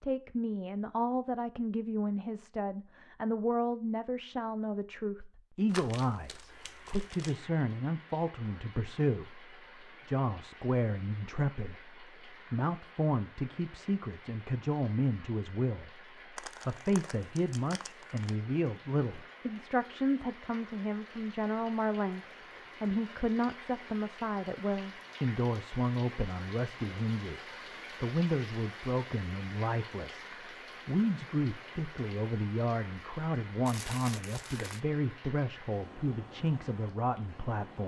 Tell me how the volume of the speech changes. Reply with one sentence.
The loudness of the speech stays about the same.